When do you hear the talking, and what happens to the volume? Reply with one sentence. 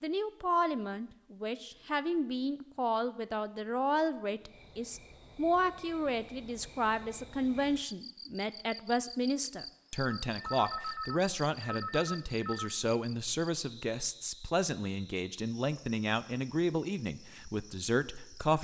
The talking can be heard from 0.0 to 18.6 s, at a steady volume.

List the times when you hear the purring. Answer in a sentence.
You can't hear the purring here.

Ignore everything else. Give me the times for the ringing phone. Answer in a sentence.
The ringing phone can be heard from 10.1 to 12.8 s.